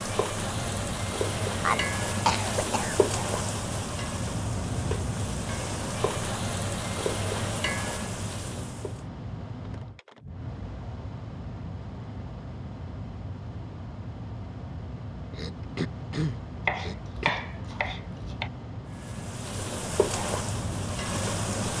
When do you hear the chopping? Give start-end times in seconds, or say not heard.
16.6-18.5.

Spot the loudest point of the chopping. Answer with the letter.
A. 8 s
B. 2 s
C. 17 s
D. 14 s
C.